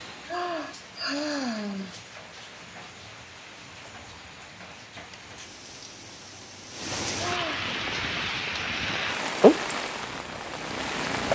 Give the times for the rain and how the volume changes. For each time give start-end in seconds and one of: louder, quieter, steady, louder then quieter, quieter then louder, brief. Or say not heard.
0.0-11.3 louder.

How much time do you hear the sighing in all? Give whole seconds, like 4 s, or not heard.
2 s.